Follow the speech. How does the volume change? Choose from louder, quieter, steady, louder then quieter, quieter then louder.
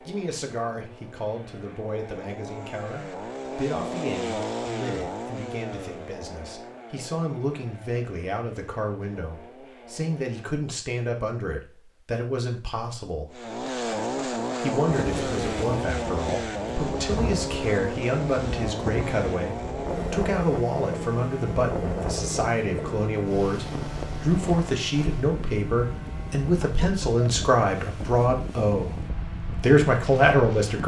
louder.